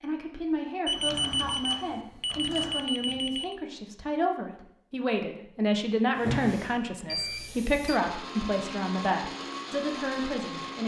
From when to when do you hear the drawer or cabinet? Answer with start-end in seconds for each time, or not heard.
0.9-2.9, 6.1-6.8.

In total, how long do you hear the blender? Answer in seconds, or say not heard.
3 s.